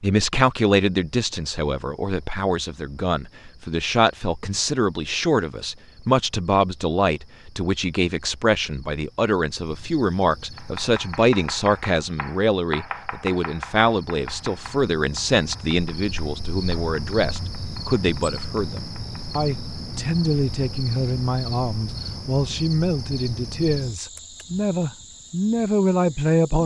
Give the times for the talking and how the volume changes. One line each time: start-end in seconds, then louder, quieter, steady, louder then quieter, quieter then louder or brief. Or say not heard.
0.0-26.6 steady.